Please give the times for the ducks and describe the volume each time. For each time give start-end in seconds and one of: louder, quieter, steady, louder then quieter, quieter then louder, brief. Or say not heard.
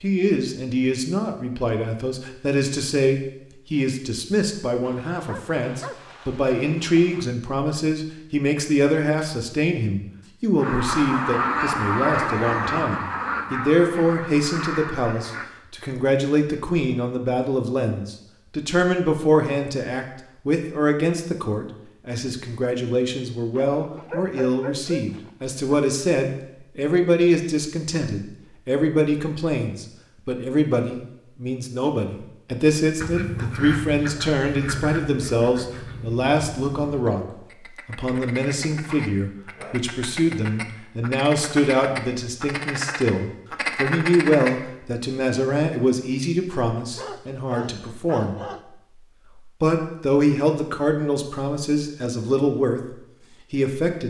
10.6-15.5 quieter
33.0-44.5 quieter then louder.